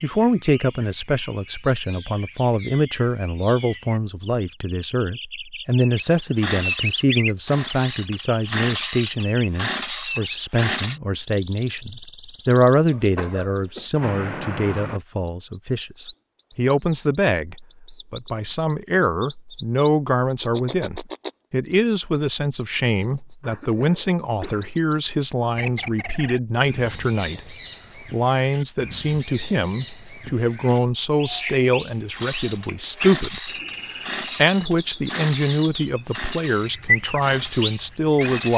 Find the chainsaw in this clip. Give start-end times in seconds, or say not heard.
6.0-11.0, 32.1-38.5.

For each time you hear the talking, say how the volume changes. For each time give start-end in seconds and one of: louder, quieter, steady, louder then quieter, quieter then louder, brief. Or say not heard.
0.0-38.5 steady.